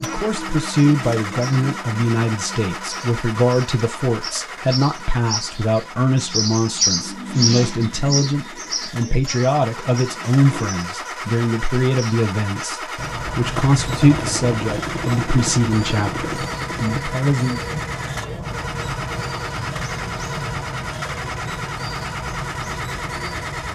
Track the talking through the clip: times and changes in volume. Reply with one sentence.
The talking can be heard from 0.0 to 17.6 s, at a steady volume.